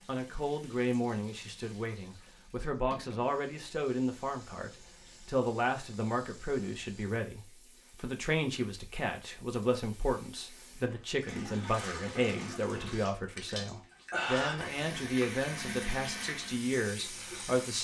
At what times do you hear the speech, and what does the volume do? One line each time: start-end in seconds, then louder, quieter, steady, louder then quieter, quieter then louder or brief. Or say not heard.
0.1-17.7 steady.